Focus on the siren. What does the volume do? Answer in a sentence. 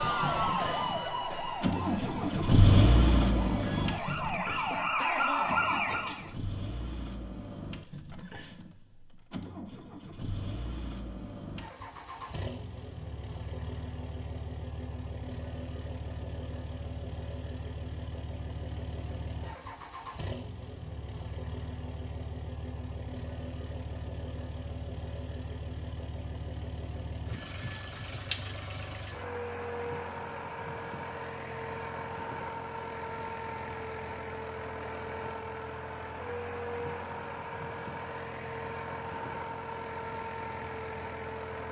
The volume of the siren goes down, then up.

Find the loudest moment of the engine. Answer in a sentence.
The volume of the engine peaks at 3 seconds.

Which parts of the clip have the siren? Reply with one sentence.
You can hear the siren from 0.0 to 6.3 s.